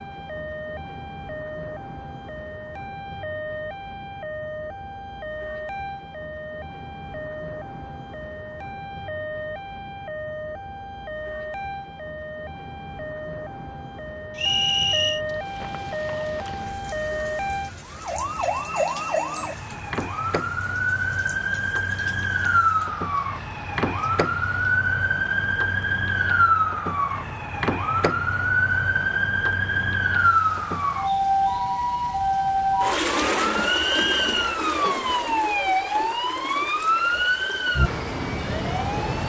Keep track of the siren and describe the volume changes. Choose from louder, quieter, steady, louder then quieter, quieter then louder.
louder.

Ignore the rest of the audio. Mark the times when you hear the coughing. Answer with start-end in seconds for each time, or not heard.
not heard.